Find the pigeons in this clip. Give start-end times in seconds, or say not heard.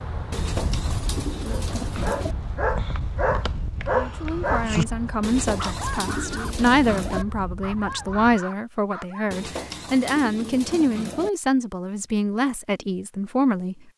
0.3-2.4, 5.2-7.2, 9.3-11.3.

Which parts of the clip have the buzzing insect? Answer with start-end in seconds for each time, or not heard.
not heard.